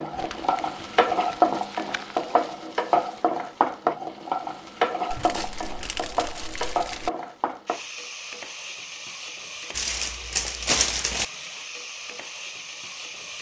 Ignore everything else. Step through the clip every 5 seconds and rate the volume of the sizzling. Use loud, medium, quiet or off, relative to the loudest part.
loud, medium, quiet.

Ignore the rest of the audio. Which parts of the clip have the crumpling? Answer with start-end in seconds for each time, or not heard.
0.1-2.4, 5.1-7.1, 9.7-11.2.